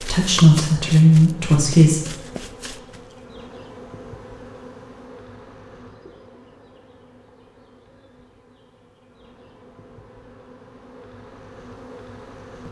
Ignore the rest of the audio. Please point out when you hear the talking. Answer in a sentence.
You can hear the talking from 0.0 to 2.0 s.